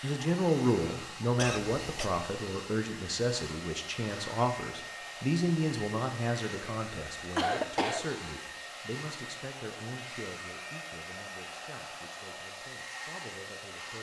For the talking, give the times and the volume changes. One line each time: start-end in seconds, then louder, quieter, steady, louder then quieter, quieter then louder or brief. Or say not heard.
0.0-13.9 quieter.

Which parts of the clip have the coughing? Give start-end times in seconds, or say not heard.
1.4-2.1, 7.3-8.1.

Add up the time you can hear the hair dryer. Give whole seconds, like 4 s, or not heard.
14 s.